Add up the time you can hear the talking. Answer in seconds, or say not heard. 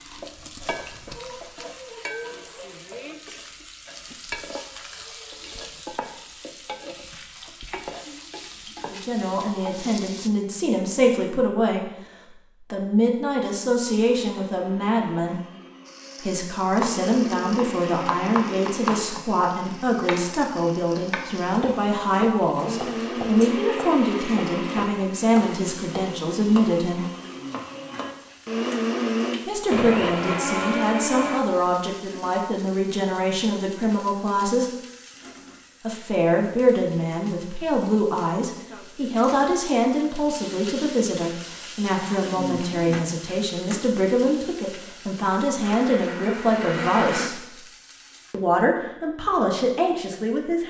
37 s.